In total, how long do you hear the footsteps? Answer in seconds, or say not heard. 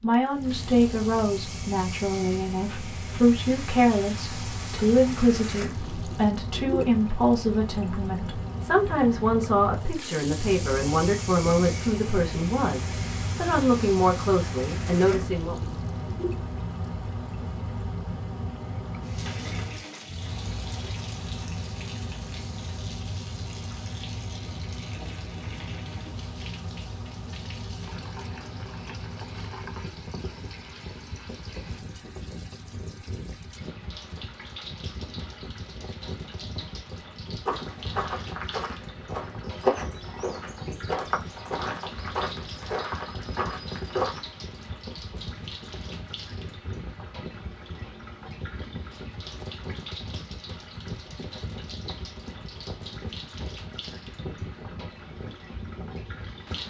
7 s.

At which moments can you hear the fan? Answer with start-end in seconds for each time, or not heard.
0.0-56.6.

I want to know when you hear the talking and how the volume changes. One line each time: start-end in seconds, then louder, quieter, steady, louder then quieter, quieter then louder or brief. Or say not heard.
0.0-15.7 steady.